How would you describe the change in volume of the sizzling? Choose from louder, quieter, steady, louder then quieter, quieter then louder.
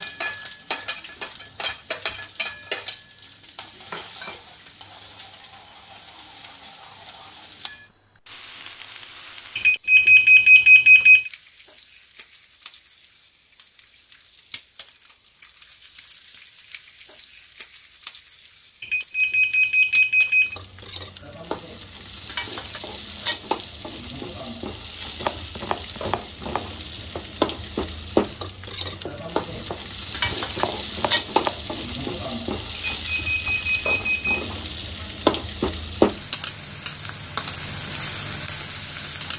quieter then louder.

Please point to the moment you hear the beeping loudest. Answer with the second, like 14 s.
11 s.